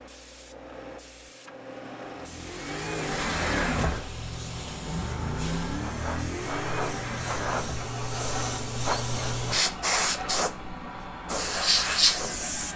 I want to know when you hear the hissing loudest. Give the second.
12 s.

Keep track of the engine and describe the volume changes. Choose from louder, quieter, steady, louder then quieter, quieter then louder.
quieter.